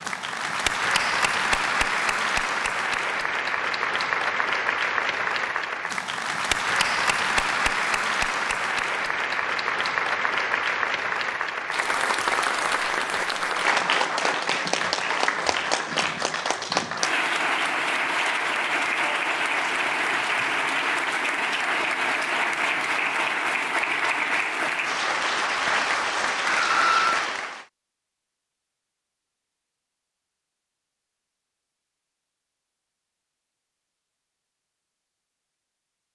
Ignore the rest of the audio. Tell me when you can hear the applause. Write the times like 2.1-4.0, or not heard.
0.0-27.6.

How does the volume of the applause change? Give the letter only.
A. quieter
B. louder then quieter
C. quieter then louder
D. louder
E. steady
E.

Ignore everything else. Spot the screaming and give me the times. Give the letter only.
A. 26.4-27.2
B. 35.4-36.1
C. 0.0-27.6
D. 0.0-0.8
A.